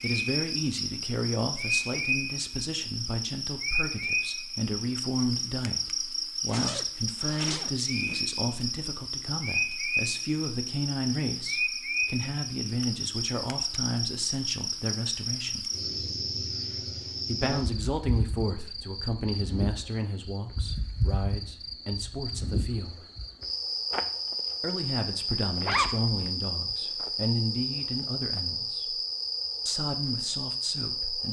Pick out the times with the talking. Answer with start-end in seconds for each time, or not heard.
0.0-15.7, 17.2-23.1, 24.6-29.0, 29.6-31.2.